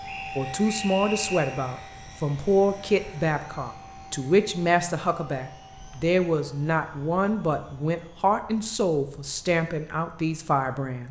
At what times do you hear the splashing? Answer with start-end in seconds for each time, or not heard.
not heard.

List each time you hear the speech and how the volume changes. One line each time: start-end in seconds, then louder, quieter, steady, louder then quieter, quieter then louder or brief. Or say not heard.
0.3-11.0 steady.